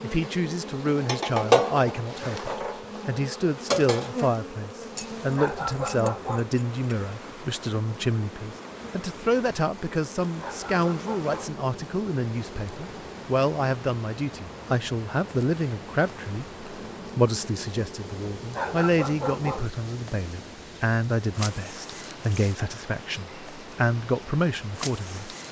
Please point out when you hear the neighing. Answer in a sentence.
You can't hear the neighing here.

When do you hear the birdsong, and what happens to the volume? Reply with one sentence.
The birdsong can't be heard in this clip.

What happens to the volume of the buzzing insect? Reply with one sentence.
The loudness of the buzzing insect goes down.